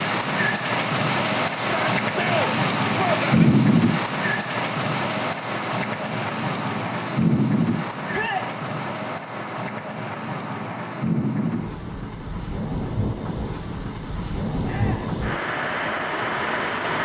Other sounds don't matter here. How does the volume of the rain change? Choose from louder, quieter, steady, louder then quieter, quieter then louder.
quieter.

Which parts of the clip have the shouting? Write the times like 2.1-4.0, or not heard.
1.6-3.5, 8.1-8.5, 14.7-15.2.